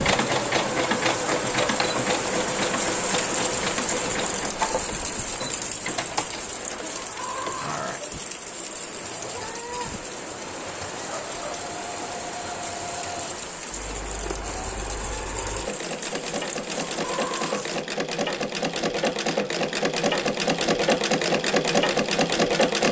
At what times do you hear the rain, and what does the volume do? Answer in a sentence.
The rain can be heard from 0.0 to 17.9 s, getting quieter.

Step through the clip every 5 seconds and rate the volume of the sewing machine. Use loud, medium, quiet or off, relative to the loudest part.
medium, quiet, quiet, medium, loud.